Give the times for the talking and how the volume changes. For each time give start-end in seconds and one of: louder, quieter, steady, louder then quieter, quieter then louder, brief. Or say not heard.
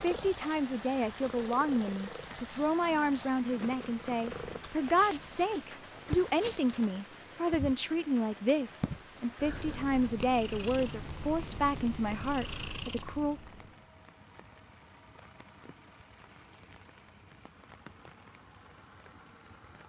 0.0-13.4 steady.